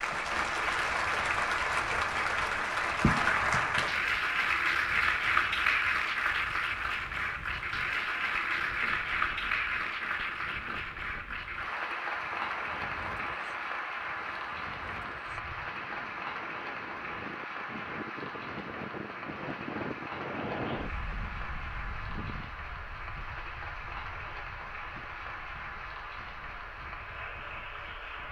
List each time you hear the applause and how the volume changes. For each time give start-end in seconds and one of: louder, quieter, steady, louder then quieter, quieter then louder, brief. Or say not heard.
0.0-28.2 quieter.